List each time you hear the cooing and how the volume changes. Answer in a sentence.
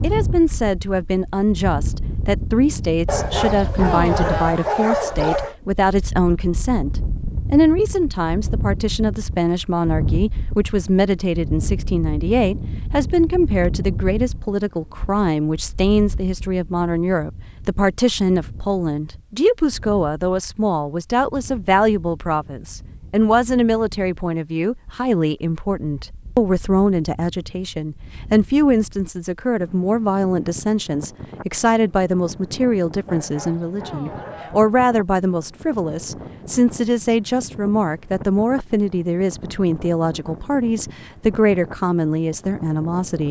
The cooing can't be heard in this clip.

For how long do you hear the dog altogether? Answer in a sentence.
You can hear the dog for 4 seconds altogether.